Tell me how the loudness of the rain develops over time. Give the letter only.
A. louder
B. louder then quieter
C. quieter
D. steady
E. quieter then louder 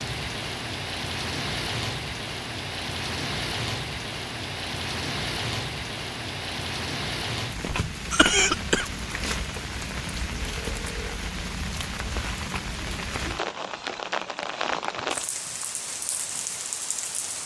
D.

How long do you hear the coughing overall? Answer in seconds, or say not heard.
2 s.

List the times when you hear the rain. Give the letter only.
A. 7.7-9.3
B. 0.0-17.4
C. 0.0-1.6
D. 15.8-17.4
B.